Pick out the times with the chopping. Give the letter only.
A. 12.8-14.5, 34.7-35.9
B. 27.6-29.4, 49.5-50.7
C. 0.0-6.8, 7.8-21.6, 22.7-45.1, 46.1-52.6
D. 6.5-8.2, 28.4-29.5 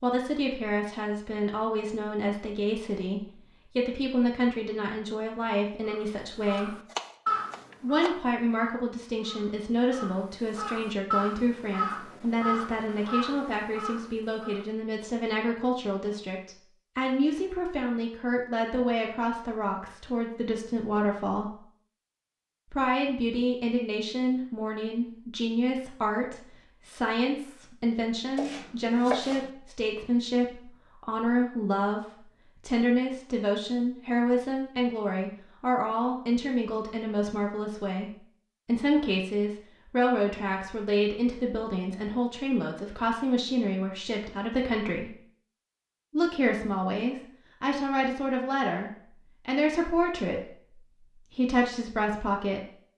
D.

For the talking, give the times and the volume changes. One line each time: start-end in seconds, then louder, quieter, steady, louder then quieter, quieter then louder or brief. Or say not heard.
0.0-6.8 steady
7.8-21.6 steady
22.7-45.1 steady
46.1-52.6 steady.